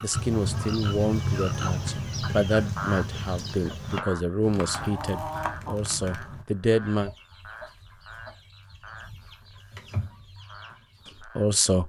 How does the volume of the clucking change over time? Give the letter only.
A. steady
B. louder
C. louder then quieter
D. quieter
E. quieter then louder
E.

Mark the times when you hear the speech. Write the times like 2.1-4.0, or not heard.
0.0-7.1, 11.2-11.8.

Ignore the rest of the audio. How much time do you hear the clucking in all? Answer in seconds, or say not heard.
11 s.